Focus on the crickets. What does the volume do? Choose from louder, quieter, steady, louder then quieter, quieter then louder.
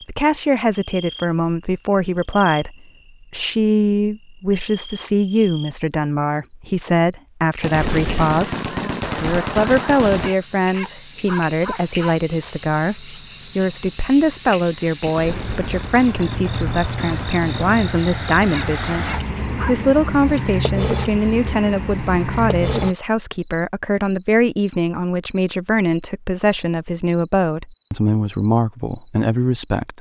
louder.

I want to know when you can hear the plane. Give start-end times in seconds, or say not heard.
not heard.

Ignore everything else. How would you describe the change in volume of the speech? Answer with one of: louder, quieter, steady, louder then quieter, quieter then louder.
steady.